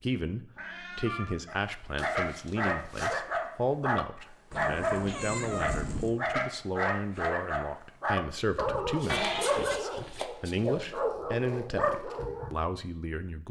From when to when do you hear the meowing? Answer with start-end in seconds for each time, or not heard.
0.6-1.3, 4.5-6.2, 9.1-9.8.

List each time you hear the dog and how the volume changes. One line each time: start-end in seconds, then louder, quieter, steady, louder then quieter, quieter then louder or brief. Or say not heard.
1.4-12.5 steady.